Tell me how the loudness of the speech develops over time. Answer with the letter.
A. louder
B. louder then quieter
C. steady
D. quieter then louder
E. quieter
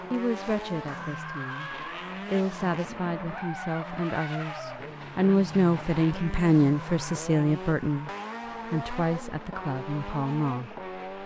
B.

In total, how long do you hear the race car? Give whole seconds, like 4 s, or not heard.
11 s.